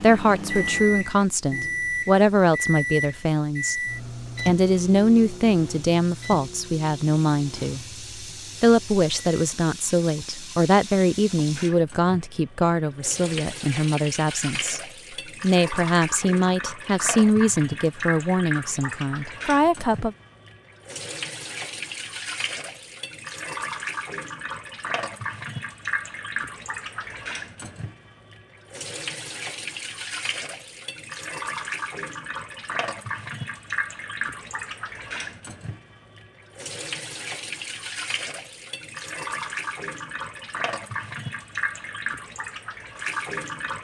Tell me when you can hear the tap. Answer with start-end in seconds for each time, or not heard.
0.0-43.7.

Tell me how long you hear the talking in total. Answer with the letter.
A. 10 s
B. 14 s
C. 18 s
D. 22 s
C.